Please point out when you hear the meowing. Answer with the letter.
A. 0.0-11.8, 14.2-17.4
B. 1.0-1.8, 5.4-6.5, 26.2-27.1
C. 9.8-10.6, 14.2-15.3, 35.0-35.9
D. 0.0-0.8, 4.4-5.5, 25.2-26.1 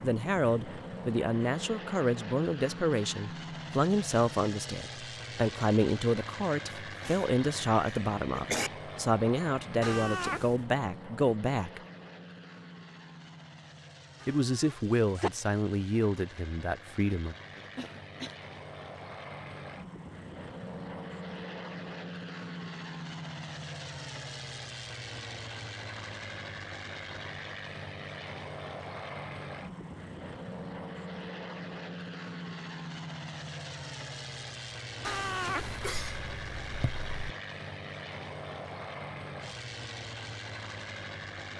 C.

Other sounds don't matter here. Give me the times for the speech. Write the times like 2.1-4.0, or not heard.
0.0-11.8, 14.2-17.4.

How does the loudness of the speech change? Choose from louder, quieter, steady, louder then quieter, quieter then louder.
steady.